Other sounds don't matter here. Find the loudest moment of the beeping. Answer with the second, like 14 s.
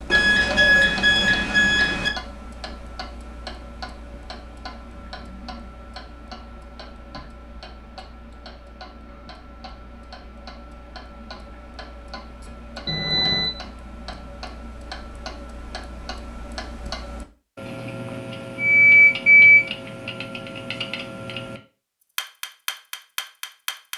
19 s.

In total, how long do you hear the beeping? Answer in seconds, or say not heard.
4 s.